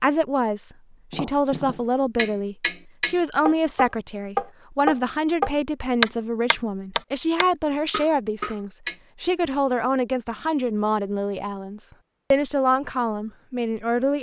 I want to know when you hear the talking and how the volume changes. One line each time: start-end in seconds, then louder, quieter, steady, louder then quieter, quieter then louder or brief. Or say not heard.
0.0-14.1 steady.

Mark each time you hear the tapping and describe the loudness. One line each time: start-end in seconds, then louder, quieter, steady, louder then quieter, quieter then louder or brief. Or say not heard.
1.1-8.9 louder then quieter.